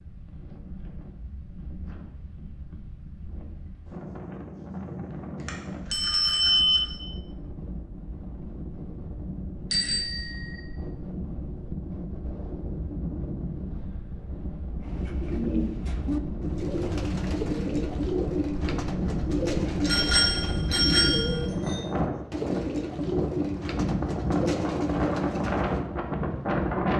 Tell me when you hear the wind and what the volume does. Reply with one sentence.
You can hear the wind from 0.0 to 26.9 s, getting louder.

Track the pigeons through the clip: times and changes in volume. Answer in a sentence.
You can hear the pigeons from 14.8 to 25.9 s, at a steady volume.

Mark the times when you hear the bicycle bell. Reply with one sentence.
You can hear the bicycle bell from 5.4 to 6.8 s, from 9.7 to 10.6 s and from 19.9 to 21.8 s.